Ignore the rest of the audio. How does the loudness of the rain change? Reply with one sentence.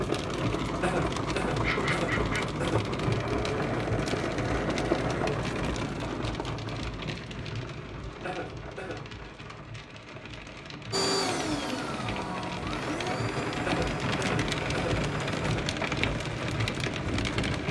The volume of the rain goes down, then up.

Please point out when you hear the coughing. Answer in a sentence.
The coughing can be heard from 0.8 to 2.8 s, from 8.2 to 9.1 s and from 13.7 to 15.7 s.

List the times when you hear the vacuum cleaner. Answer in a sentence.
You can hear the vacuum cleaner from 3.0 to 5.3 s and from 10.9 to 15.6 s.